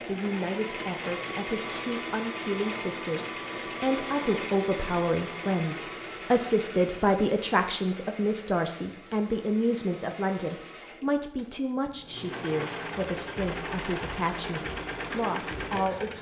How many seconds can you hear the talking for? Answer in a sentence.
The talking can be heard for 16 seconds in total.